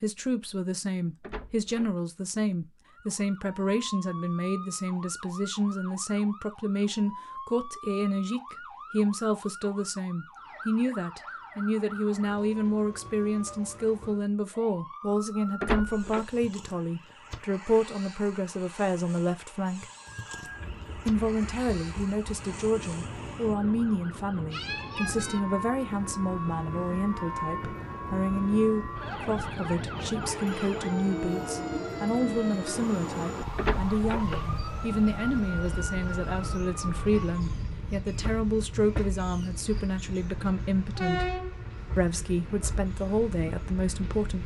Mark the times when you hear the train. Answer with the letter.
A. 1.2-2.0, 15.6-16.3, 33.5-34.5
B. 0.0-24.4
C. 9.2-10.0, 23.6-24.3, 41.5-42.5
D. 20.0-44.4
D.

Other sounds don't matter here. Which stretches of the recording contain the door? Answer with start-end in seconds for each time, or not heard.
1.2-2.0, 15.6-16.3, 33.5-34.5.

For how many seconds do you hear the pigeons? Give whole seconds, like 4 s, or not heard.
not heard.